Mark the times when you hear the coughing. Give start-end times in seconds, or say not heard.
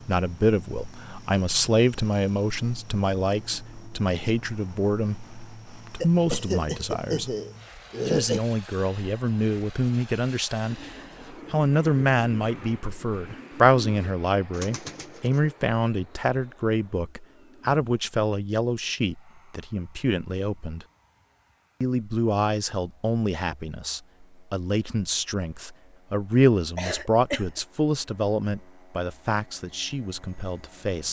6.0-8.4, 26.8-27.6.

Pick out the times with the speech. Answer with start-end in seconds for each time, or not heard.
0.1-7.3, 8.1-20.9, 21.8-31.0.